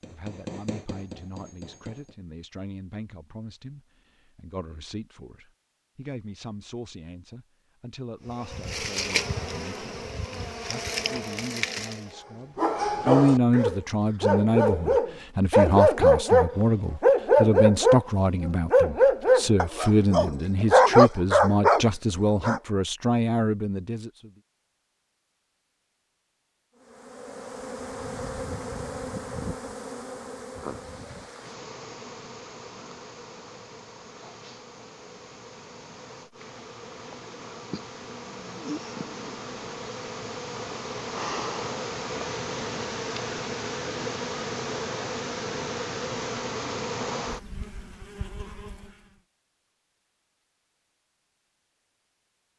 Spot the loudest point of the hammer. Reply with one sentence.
The volume of the hammer peaks at 1 second.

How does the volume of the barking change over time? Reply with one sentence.
The loudness of the barking goes up.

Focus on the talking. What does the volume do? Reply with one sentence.
The loudness of the talking goes up.